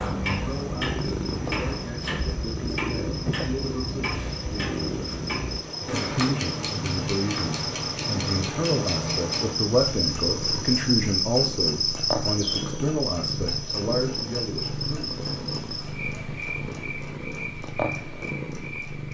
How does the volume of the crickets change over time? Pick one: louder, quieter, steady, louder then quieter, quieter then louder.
louder then quieter.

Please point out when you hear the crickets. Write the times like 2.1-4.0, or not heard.
0.1-19.1.